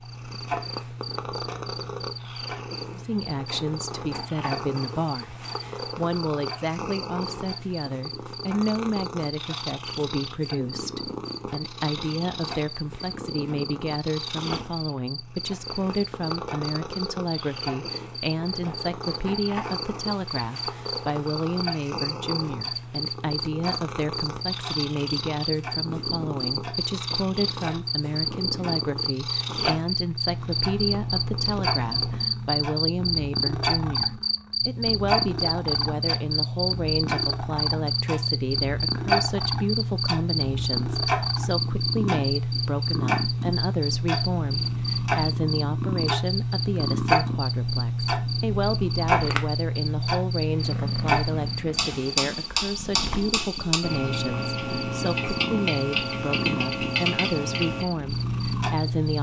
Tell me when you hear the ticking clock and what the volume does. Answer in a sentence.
The ticking clock can be heard from 0.0 to 59.1 s, getting louder.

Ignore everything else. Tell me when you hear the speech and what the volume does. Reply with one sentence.
The speech can be heard from 2.9 to 59.1 s, at a steady volume.